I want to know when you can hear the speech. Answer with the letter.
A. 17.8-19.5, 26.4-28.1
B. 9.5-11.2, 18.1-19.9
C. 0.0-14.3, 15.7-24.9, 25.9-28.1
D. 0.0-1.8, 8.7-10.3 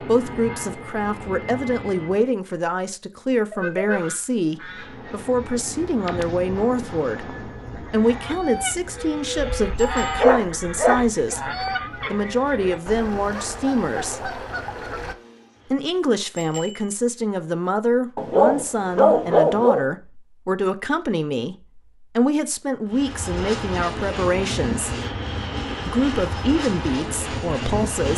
C.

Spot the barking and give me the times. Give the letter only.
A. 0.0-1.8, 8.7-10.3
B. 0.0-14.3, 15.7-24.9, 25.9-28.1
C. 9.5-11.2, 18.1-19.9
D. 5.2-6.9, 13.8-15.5
C.